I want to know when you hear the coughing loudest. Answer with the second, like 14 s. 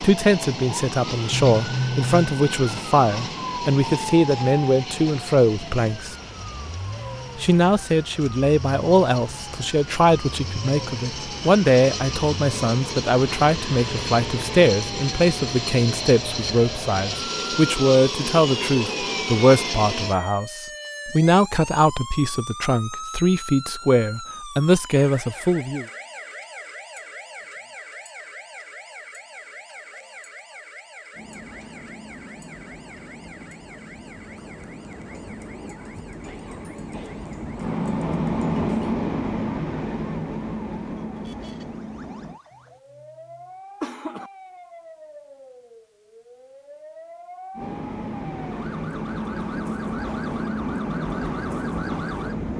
2 s.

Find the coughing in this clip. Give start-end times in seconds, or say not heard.
1.3-2.4, 43.8-44.3.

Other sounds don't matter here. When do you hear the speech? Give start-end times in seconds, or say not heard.
0.0-6.2, 7.3-25.9.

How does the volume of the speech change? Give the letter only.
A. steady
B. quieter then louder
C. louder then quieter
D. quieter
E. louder
A.